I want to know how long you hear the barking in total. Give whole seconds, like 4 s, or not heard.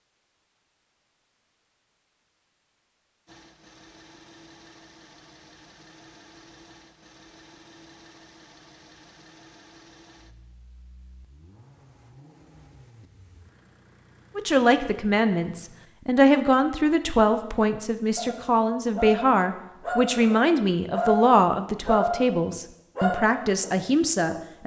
6 s.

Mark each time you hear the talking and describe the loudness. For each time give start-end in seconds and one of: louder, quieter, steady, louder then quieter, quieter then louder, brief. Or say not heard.
14.3-24.6 steady.